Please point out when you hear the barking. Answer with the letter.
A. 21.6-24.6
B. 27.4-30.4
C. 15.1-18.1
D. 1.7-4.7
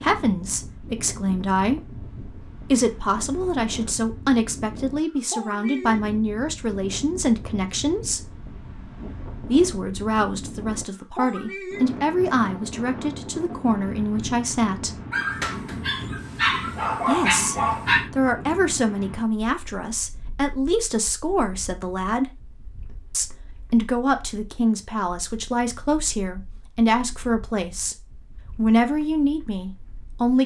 C.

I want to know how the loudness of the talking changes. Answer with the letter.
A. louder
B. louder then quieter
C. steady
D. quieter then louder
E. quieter
C.